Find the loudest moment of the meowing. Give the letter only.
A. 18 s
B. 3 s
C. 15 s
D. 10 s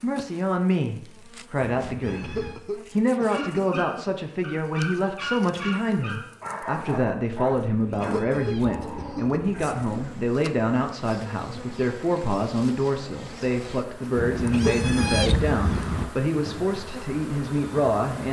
C.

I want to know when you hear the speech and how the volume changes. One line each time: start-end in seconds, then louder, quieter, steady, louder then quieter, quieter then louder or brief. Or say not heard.
0.0-18.2 steady.